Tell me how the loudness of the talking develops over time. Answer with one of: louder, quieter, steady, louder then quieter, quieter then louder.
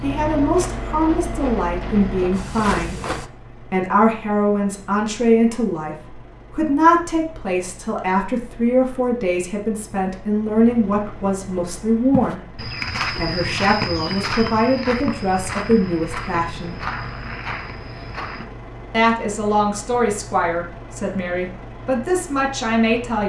steady.